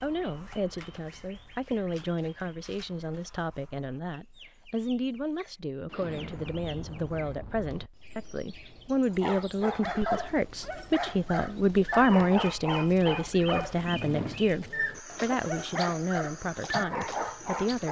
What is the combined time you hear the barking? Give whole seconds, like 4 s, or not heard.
9 s.